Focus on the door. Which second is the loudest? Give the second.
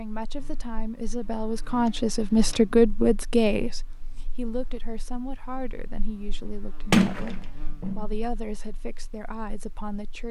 7 s.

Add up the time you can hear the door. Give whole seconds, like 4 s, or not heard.
2 s.